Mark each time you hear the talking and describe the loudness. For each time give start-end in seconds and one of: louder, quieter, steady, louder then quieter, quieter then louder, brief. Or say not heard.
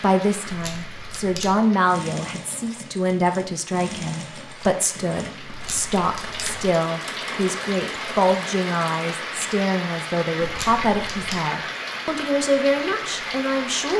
0.0-13.9 steady.